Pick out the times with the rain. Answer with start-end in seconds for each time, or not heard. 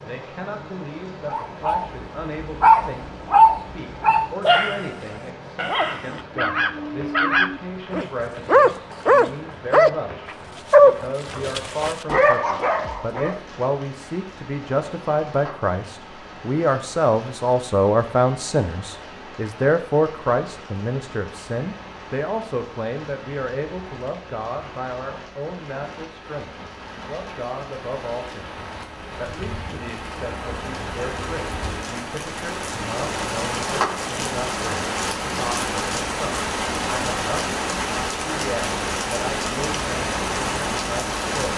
0.0-41.5.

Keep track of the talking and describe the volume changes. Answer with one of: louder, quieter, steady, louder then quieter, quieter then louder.
louder then quieter.